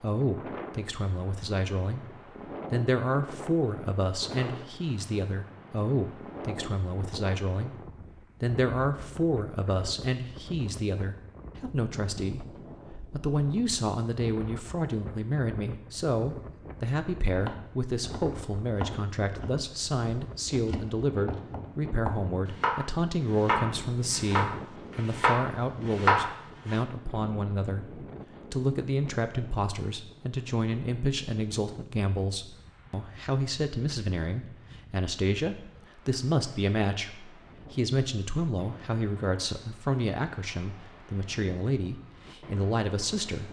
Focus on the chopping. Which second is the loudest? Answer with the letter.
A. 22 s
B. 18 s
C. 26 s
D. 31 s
C.